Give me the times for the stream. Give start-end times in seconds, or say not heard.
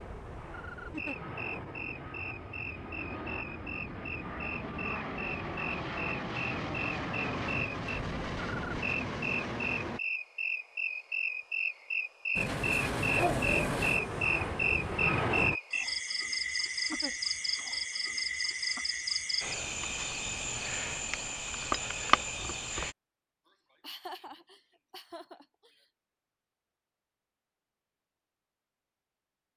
not heard.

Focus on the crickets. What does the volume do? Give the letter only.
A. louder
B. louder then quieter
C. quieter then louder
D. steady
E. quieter
A.